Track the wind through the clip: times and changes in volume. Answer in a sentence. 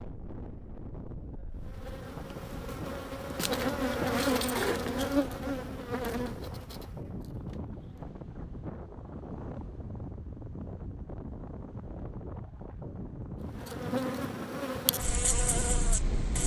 The wind can be heard from 0.0 to 16.4 s, at a steady volume.